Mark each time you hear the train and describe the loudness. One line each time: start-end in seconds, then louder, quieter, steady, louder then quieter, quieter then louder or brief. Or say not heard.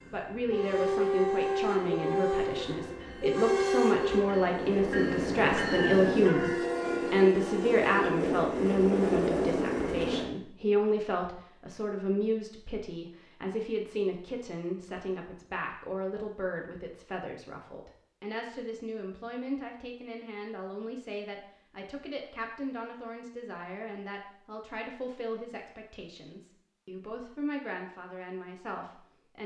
0.0-10.3 steady.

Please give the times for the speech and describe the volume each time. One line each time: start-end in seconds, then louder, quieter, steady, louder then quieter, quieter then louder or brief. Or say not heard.
0.1-29.4 quieter.